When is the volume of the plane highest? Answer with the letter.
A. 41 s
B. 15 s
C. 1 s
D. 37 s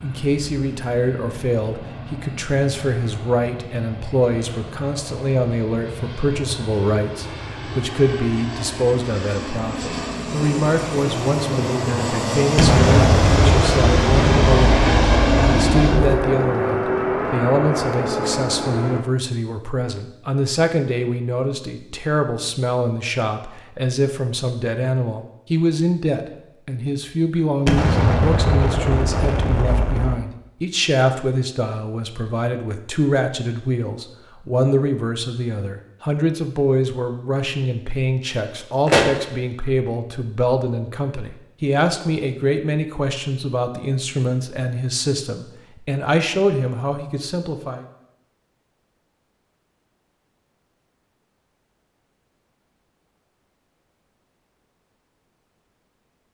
B.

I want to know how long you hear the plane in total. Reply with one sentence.
The plane can be heard for 19 seconds in total.